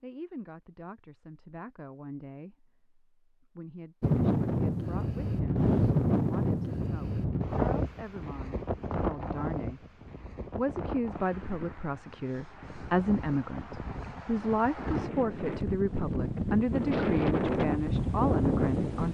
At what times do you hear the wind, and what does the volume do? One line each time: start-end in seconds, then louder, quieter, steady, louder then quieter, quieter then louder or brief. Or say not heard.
4.0-19.1 quieter then louder.